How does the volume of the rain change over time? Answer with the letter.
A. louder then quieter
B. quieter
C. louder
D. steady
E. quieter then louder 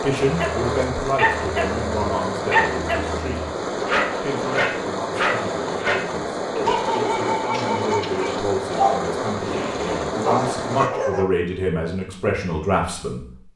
D.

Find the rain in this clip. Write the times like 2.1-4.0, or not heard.
0.0-10.9.